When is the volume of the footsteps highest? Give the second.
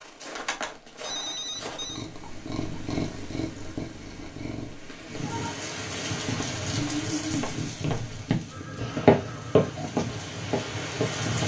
9 s.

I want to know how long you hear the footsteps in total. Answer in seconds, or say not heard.
7 s.